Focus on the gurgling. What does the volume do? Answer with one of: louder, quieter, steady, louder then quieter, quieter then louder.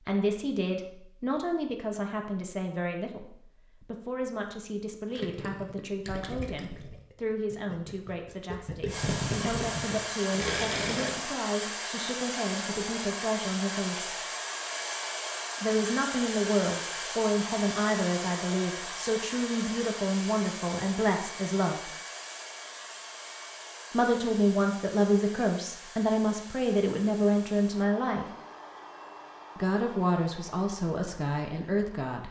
quieter then louder.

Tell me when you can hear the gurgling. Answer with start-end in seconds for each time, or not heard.
5.1-11.2.